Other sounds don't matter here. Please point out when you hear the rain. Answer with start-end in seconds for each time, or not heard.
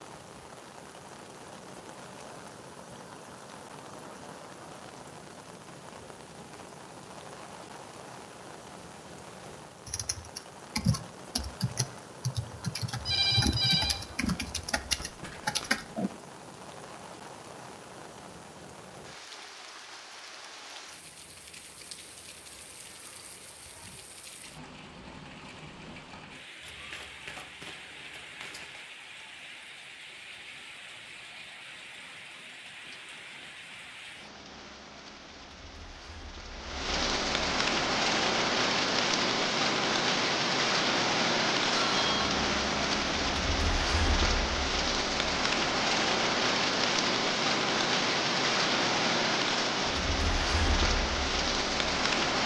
0.0-52.4.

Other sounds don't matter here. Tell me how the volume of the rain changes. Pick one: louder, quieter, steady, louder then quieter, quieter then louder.
louder.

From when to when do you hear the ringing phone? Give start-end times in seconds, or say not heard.
13.1-14.0, 41.7-42.4.